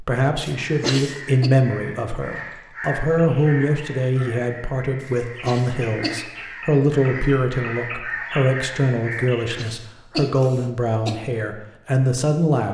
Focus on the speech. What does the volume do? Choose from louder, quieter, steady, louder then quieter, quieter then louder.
steady.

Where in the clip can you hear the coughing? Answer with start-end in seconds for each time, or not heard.
0.3-1.5, 5.0-6.2, 9.1-11.2.